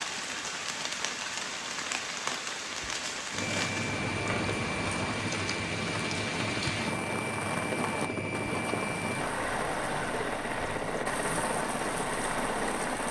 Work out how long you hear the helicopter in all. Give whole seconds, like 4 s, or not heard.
10 s.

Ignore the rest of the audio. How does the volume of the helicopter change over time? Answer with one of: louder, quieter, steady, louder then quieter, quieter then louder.
steady.